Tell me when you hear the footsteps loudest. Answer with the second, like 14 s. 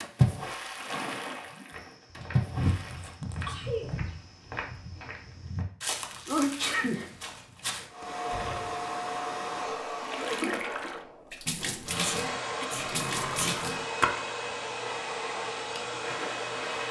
3 s.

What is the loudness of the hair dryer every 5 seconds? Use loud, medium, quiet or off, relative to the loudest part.
off, loud, loud, loud.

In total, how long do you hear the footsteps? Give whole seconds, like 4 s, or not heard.
6 s.